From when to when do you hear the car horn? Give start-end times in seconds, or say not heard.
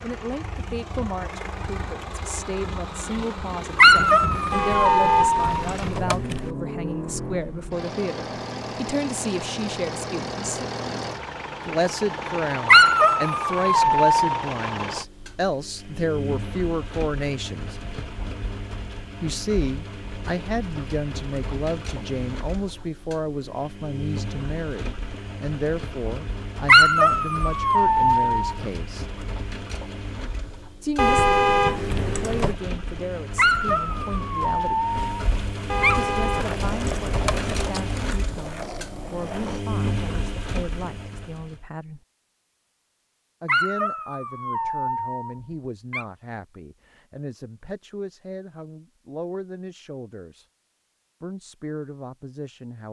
4.5-6.5, 30.9-32.5, 35.7-37.7.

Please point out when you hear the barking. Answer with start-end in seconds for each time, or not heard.
3.8-5.7, 12.7-14.4, 26.6-28.6, 33.4-36.0, 43.5-46.0.